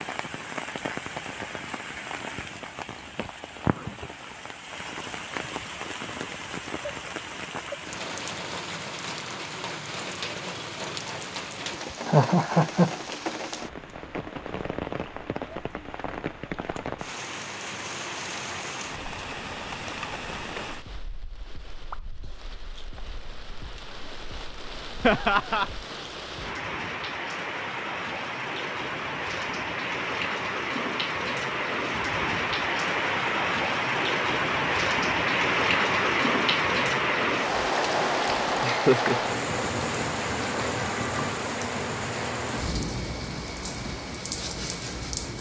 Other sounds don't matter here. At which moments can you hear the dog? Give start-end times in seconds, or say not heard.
not heard.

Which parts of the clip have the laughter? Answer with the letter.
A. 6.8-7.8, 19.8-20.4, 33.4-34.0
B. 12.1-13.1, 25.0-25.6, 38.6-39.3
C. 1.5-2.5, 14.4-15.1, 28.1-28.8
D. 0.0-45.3
B.